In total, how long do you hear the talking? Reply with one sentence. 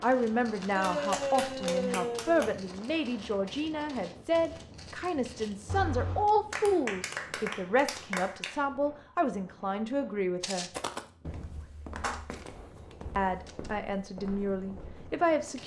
The talking can be heard for 13 seconds in total.